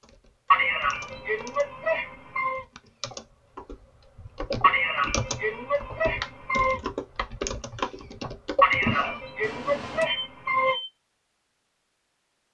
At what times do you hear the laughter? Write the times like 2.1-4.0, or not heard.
0.5-2.6, 4.6-6.8, 8.6-10.8.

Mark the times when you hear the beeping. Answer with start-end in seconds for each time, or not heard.
10.1-10.9.